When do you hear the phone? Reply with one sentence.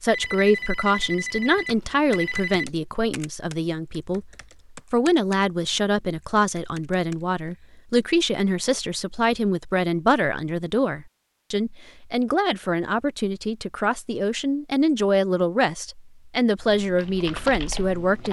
You can hear the phone from 0.1 to 2.6 s.